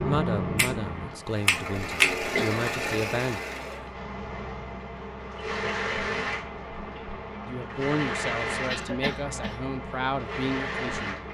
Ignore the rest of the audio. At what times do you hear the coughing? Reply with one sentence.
The coughing can be heard from 2.1 to 2.6 s and from 8.7 to 9.6 s.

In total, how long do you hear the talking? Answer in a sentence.
The talking can be heard for 7 seconds in total.